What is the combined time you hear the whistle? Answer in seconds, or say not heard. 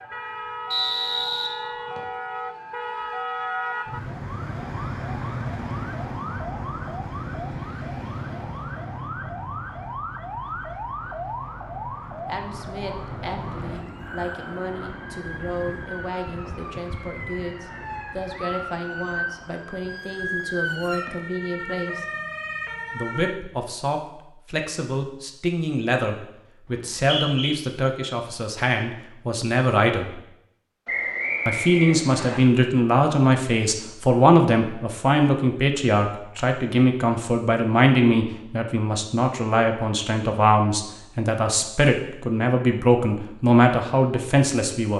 4 s.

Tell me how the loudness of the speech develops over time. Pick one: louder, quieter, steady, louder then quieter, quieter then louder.
louder.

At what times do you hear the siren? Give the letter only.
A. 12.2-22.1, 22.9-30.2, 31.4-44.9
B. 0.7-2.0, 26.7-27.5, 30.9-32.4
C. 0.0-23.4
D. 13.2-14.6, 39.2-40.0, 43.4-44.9
C.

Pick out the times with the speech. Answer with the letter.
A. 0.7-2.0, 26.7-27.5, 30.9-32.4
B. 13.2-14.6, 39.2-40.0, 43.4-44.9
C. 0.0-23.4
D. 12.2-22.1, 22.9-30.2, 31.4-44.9
D.